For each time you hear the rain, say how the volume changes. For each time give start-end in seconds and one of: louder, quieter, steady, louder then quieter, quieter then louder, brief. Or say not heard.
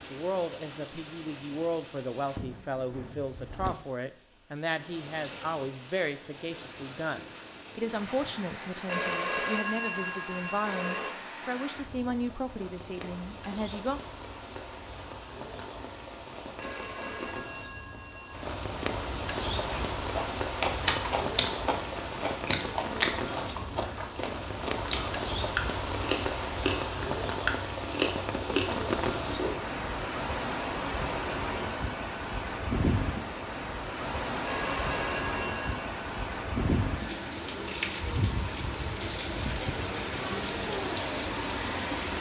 0.0-42.1 louder.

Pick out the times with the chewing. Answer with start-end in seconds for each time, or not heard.
19.6-29.6.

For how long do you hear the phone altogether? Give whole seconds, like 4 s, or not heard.
6 s.